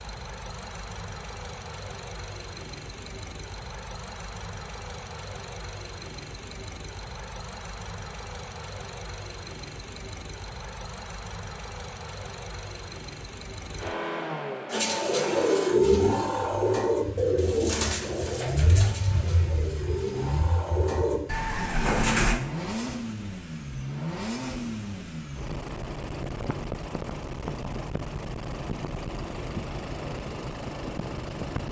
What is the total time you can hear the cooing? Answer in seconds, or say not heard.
8 s.